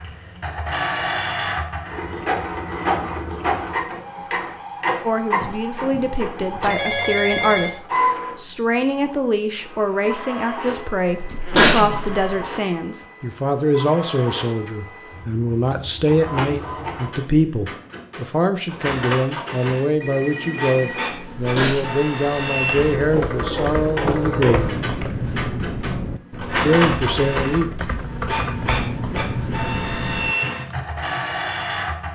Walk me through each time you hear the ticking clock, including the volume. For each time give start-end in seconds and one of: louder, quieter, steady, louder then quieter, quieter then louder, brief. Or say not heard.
not heard.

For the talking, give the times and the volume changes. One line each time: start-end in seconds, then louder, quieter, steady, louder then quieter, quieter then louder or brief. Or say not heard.
5.0-24.7 steady
26.6-27.7 brief.